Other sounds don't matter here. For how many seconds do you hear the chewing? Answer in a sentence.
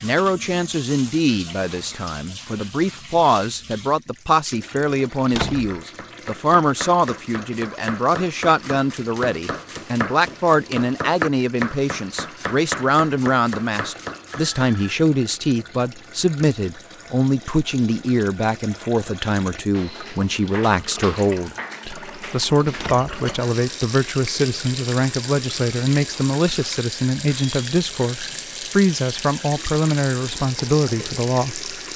You can't hear the chewing here.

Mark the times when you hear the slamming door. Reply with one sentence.
You can hear the slamming door from 5.2 to 5.8 s and from 22.6 to 23.1 s.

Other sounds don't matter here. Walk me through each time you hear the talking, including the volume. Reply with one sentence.
The talking can be heard from 0.0 to 31.7 s, at a steady volume.